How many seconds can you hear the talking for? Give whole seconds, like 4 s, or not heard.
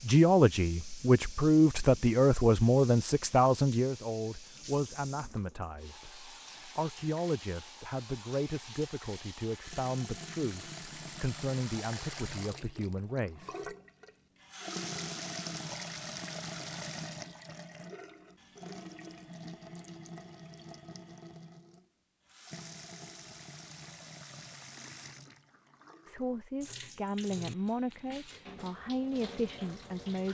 18 s.